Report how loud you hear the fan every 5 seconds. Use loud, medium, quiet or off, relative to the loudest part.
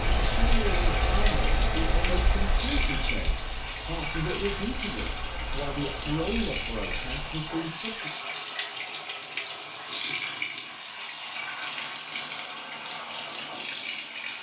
loud, medium, off.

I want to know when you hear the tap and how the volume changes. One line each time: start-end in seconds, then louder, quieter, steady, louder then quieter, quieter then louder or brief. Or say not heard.
0.0-14.3 steady.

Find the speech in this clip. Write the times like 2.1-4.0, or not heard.
0.0-8.2.